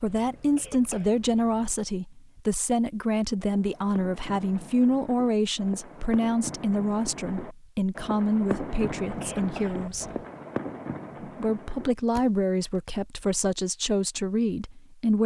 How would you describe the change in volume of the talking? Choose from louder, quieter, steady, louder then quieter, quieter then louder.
steady.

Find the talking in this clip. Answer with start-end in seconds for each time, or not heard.
0.0-10.1, 11.3-15.2.